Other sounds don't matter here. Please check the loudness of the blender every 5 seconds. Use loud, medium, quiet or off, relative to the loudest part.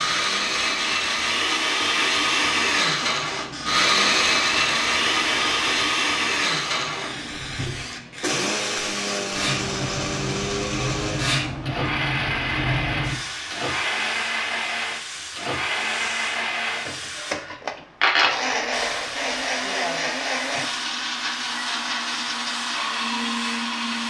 loud, loud, medium, medium, medium.